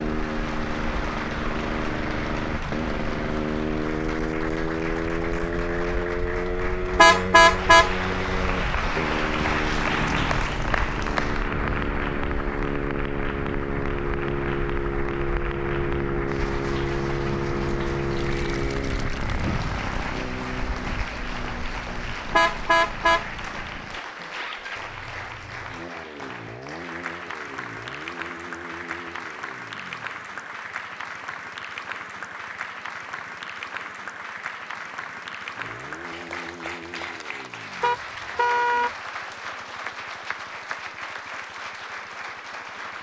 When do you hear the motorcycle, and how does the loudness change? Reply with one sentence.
You can hear the motorcycle from 0.0 to 42.9 s, getting quieter.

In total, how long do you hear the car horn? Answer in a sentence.
The car horn can be heard for 4 seconds in total.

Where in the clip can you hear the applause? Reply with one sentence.
You can hear the applause from 0.0 to 42.9 s.